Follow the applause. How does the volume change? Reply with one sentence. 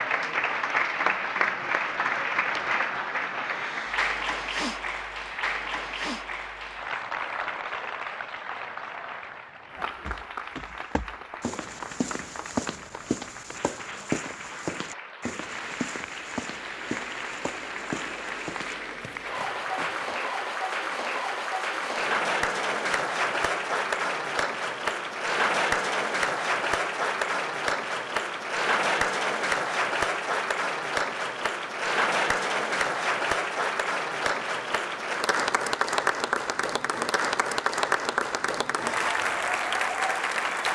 The volume of the applause goes down, then up.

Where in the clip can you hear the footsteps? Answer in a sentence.
The footsteps can be heard from 10.1 to 20.1 s.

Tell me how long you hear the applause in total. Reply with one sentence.
The applause can be heard for 41 seconds in total.